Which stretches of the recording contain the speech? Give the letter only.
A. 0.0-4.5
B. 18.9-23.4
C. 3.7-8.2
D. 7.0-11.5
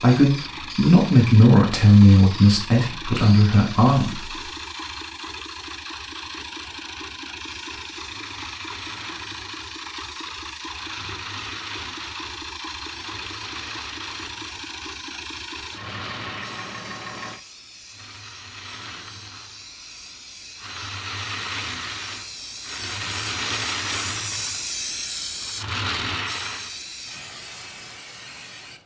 A.